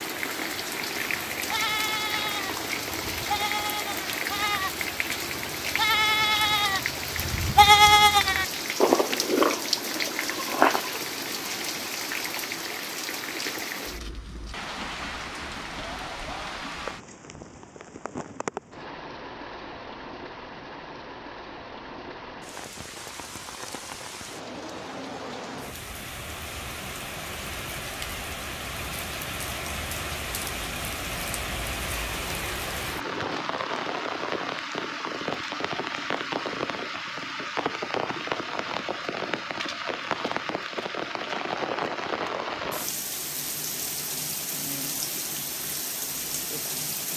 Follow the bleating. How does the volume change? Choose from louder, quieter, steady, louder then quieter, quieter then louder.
louder then quieter.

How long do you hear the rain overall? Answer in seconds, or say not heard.
47 s.